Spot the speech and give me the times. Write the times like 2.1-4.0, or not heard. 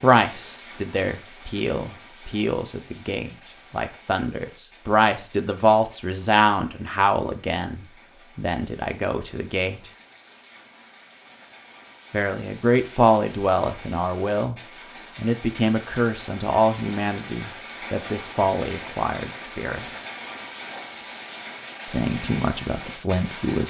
0.0-9.9, 12.1-19.9, 21.9-23.6.